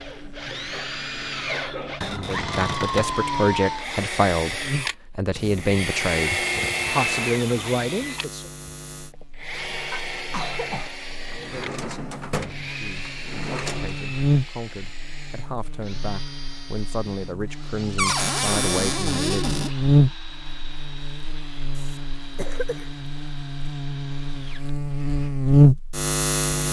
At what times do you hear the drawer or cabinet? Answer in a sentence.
The drawer or cabinet can be heard from 2.0 to 3.1 s, from 11.3 to 14.0 s and from 17.9 to 19.7 s.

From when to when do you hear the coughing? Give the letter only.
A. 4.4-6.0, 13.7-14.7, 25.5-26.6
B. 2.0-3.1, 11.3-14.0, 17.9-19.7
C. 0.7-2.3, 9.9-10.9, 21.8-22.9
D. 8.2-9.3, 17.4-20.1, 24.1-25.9
C.